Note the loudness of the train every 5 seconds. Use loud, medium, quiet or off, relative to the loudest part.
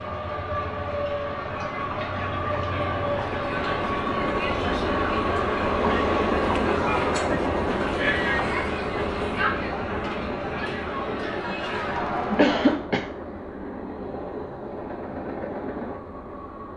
loud, loud, medium, medium.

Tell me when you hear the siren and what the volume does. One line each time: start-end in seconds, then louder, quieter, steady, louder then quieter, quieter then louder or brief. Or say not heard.
not heard.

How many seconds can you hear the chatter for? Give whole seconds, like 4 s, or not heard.
13 s.